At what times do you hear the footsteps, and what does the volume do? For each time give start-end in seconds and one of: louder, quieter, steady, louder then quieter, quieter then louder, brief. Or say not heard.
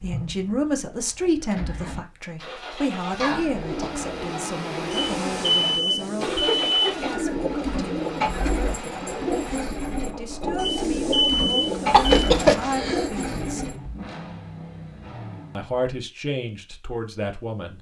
not heard.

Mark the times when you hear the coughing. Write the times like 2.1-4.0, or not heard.
3.1-4.1, 6.2-7.3, 11.9-13.1.